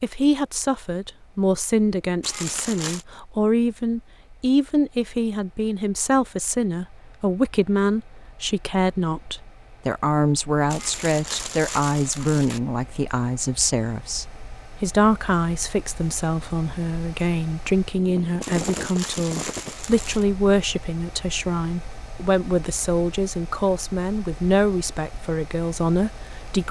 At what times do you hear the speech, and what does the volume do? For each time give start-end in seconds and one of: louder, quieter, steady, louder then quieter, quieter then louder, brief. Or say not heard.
0.0-26.6 steady.